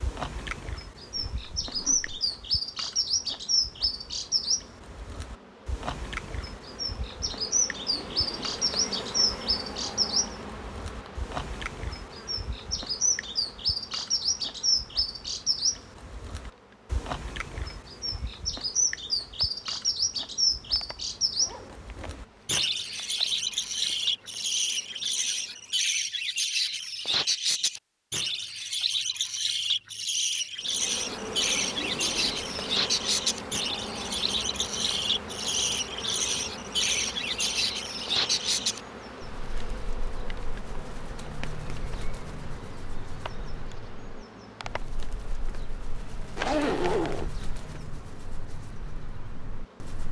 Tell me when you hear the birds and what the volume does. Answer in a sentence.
You can hear the birds from 0.0 to 50.0 s, getting quieter.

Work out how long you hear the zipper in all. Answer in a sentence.
You can hear the zipper for 3 seconds altogether.